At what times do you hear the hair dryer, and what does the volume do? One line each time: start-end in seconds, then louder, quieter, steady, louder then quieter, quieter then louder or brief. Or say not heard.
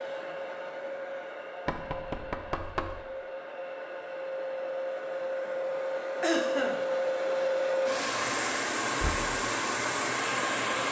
0.0-10.8 louder.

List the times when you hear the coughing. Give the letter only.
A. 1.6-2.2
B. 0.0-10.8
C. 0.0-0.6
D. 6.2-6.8
D.